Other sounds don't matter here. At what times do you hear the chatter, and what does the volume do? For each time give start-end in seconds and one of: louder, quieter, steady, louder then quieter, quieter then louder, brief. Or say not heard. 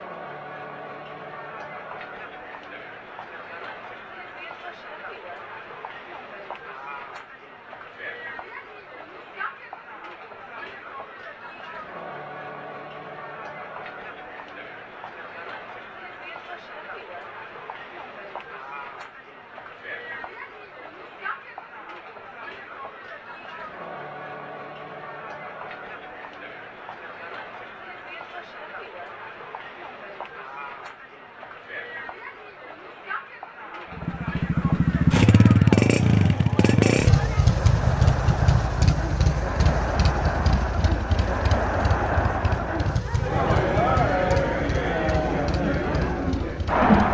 0.0-47.0 louder.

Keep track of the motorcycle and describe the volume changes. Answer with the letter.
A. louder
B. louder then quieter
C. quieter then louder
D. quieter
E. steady
D.